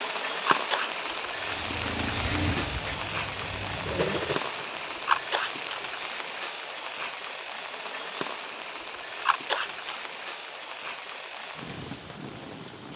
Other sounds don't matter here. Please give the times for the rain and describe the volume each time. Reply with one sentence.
The rain can be heard from 0.0 to 12.9 s, getting quieter.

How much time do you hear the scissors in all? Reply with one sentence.
The scissors can be heard for 2 seconds in total.